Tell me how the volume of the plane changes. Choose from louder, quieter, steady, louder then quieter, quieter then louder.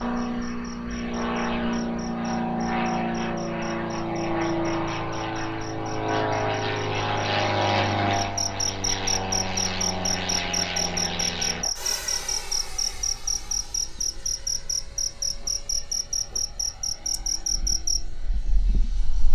quieter.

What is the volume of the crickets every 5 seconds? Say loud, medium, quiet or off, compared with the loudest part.
quiet, loud, loud, loud.